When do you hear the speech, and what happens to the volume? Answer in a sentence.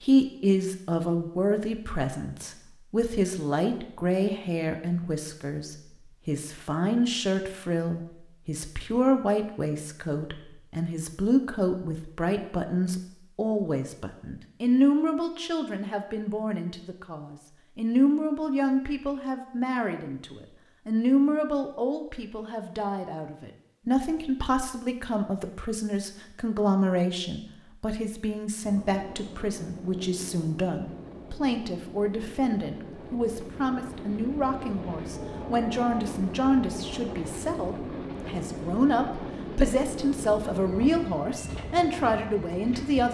You can hear the speech from 0.0 to 43.0 s, at a steady volume.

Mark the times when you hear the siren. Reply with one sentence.
The siren can't be heard in this clip.